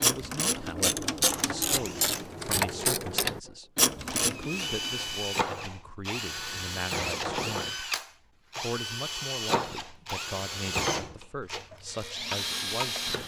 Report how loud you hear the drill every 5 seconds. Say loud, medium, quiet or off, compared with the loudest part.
medium, loud, loud.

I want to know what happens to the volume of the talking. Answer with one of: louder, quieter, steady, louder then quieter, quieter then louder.
steady.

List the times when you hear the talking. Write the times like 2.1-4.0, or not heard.
0.0-7.8, 8.6-13.1.